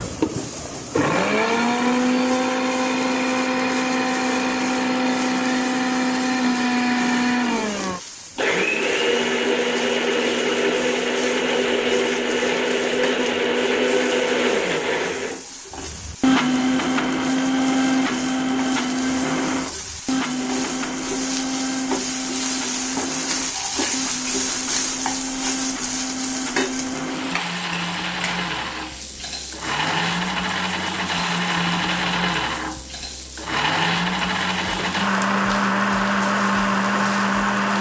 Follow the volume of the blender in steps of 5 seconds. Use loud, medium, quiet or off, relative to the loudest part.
loud, loud, loud, loud, medium, medium, loud, loud.